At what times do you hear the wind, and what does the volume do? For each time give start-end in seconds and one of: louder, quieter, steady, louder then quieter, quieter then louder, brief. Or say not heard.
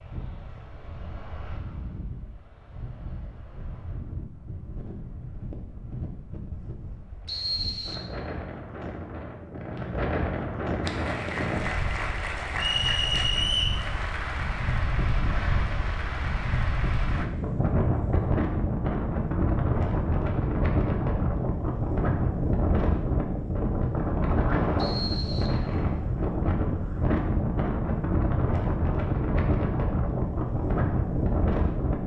0.0-32.0 louder.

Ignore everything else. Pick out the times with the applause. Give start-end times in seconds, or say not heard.
10.8-17.2.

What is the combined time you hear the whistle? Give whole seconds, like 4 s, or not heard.
3 s.